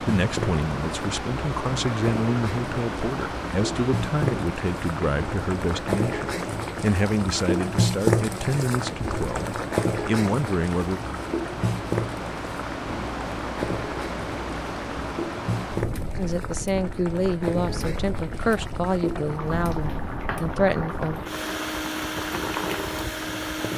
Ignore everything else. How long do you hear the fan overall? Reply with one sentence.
You can hear the fan for 24 seconds altogether.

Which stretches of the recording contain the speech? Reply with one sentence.
The speech can be heard from 0.1 to 11.0 s and from 16.1 to 21.2 s.